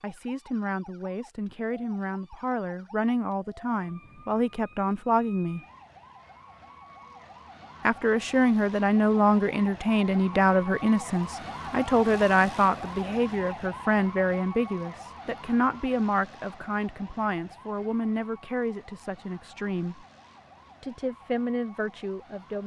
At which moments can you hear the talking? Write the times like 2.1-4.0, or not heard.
0.0-5.6, 7.8-20.1, 20.8-22.6.